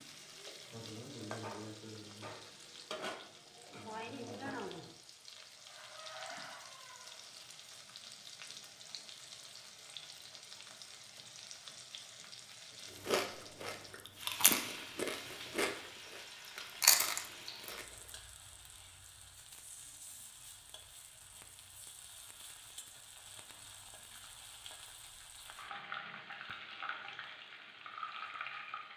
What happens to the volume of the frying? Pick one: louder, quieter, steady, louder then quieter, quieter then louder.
quieter then louder.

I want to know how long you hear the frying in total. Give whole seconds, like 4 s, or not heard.
29 s.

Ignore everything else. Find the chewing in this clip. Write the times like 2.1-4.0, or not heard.
13.0-18.1.